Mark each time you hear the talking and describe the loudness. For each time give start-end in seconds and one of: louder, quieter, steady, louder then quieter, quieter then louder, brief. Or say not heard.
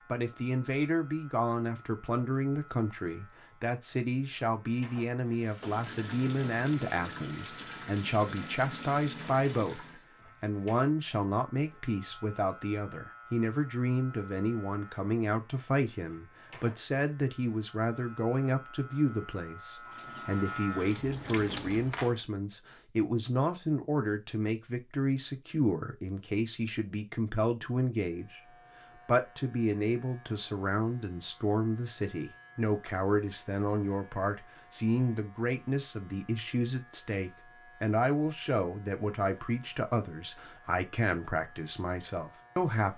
0.1-42.9 steady.